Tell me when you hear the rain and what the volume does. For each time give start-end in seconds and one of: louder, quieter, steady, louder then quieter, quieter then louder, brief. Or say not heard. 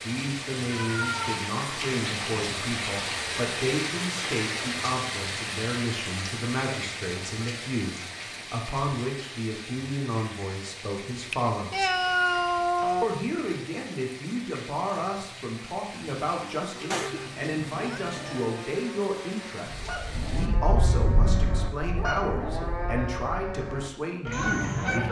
0.0-20.5 quieter.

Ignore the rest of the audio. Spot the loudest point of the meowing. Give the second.
12 s.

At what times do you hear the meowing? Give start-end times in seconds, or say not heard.
0.7-1.5, 11.1-13.1, 16.9-18.6.